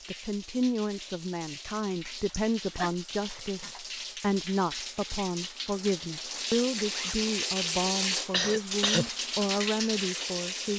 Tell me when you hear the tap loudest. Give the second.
8 s.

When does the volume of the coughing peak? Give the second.
9 s.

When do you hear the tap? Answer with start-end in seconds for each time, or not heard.
0.0-10.7.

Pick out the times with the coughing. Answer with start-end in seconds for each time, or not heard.
2.3-2.9, 8.3-9.1.